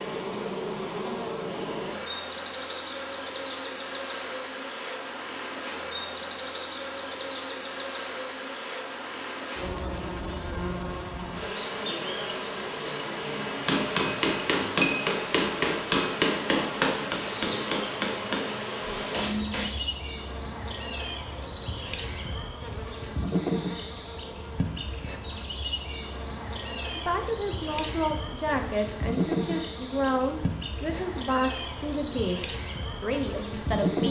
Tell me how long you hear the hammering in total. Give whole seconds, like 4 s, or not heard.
6 s.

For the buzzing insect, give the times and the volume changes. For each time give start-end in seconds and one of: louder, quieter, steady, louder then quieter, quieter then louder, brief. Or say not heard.
0.0-34.0 steady.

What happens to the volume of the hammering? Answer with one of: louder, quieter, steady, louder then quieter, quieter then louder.
quieter.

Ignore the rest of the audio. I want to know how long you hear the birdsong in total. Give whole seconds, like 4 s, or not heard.
not heard.